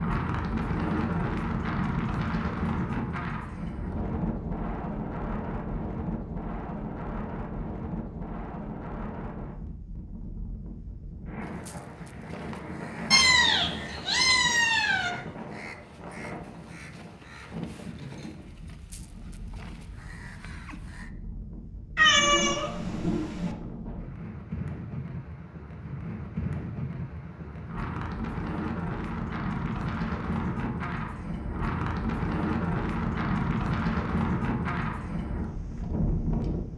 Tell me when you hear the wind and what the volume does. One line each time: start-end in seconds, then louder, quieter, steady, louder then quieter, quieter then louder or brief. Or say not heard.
0.0-36.7 quieter then louder.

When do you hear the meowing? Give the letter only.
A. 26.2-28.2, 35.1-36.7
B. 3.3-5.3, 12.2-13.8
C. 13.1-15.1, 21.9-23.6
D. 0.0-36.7
C.